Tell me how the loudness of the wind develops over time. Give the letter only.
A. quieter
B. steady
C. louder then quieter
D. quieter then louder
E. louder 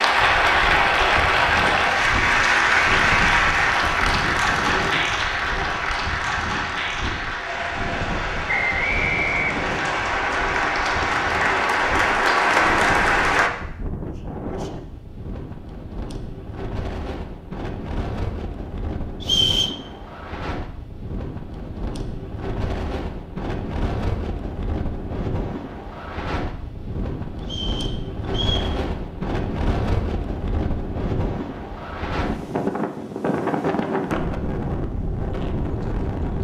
E.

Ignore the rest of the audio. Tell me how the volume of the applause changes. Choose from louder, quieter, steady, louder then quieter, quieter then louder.
quieter then louder.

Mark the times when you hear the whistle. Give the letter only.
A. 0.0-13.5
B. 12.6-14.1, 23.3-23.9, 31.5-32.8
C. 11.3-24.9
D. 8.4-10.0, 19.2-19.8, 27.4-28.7
D.